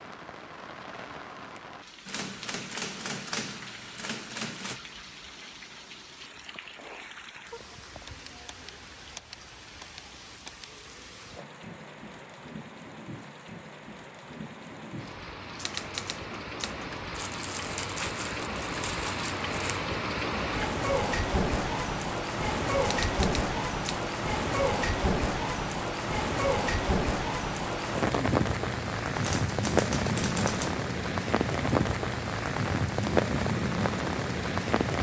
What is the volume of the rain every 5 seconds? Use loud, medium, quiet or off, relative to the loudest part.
quiet, quiet, quiet, medium, loud, loud, loud.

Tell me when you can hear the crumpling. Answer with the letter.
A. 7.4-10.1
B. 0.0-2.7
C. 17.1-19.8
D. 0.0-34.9
C.